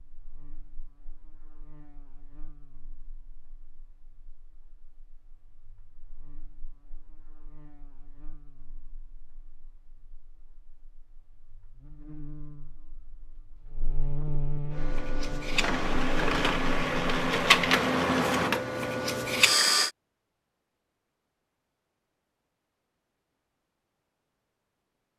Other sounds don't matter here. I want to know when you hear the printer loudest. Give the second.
18 s.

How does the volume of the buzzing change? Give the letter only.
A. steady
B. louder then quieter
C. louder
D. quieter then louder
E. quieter
D.